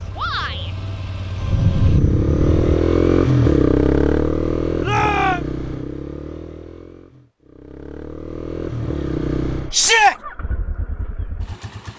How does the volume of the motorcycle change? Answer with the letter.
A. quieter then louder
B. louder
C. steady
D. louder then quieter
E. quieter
D.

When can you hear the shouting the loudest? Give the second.
10 s.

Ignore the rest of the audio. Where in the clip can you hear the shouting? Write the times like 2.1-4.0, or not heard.
0.1-0.7, 4.8-5.4, 9.7-10.2.